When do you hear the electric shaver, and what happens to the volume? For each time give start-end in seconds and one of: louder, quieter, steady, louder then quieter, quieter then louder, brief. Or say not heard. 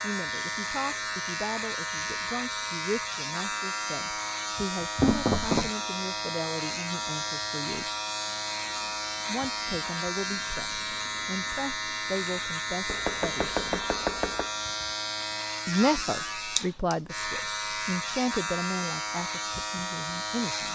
0.0-20.7 steady.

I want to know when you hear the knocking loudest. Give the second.
5 s.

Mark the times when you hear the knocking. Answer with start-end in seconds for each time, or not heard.
5.0-5.7, 12.8-14.4.